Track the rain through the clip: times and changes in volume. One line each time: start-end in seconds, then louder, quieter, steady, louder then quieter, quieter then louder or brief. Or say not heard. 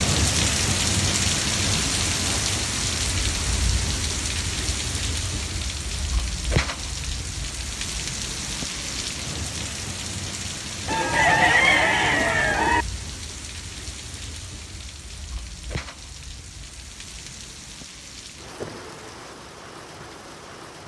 0.0-20.8 quieter.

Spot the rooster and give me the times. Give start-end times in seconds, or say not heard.
10.8-12.8.